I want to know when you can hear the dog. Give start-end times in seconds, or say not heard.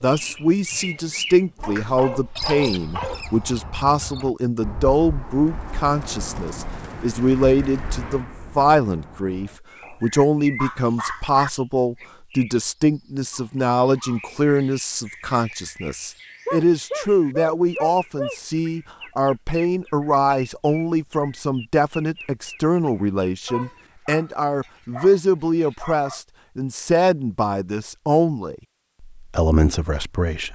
1.6-3.5, 9.8-11.5, 16.4-18.4, 23.4-26.2.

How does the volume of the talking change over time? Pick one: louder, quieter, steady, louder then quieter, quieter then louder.
steady.